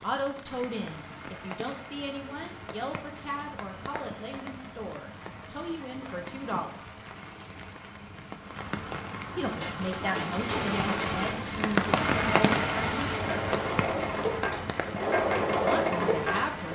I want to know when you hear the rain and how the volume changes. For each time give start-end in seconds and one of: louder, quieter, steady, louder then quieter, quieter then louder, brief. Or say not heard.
0.0-16.7 louder then quieter.